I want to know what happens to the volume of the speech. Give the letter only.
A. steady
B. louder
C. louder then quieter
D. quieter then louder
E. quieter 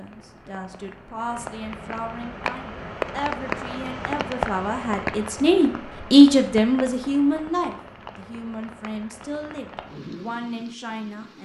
C.